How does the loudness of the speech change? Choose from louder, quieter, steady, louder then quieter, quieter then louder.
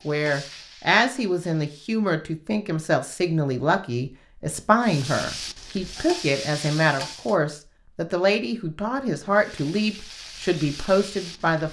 steady.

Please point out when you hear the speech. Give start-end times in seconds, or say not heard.
0.1-11.6.